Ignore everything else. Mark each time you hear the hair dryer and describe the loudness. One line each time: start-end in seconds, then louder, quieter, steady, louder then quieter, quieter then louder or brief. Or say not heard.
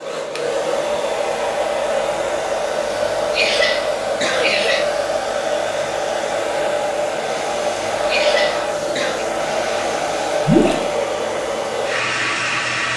0.0-12.9 steady.